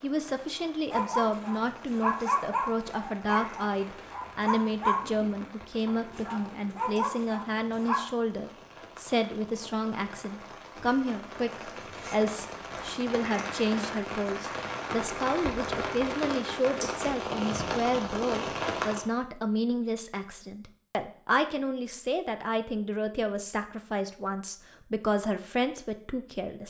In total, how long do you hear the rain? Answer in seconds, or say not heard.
19 s.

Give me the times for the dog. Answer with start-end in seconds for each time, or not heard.
0.9-8.1.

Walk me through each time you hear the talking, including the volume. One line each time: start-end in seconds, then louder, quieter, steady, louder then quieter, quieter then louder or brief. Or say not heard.
0.0-26.6 steady.